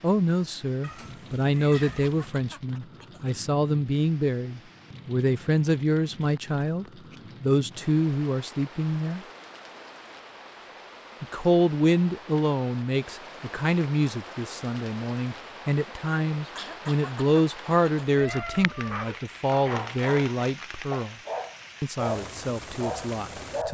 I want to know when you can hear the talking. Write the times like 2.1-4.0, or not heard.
0.0-9.2, 11.2-21.1, 21.8-23.7.